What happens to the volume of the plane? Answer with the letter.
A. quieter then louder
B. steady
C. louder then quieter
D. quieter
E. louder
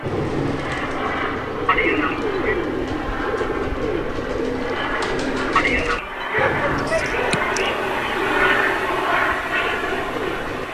E.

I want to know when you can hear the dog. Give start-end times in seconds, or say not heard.
6.2-7.9.